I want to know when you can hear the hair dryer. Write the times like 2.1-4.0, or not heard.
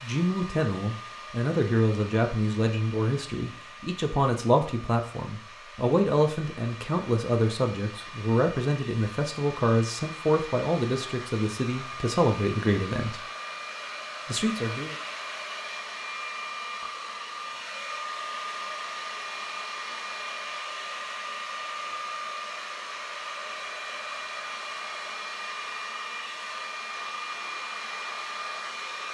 0.0-29.0.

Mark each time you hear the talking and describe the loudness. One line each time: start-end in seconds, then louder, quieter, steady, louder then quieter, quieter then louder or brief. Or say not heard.
0.0-13.2 steady
14.2-14.9 brief.